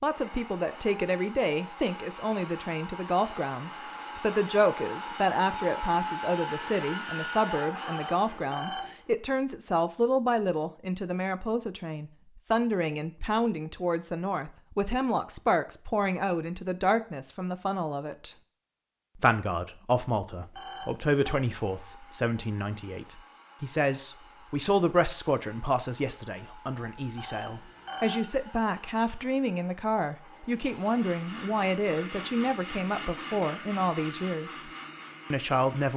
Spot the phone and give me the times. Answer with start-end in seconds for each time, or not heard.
7.8-8.9, 20.5-21.4, 27.1-28.3.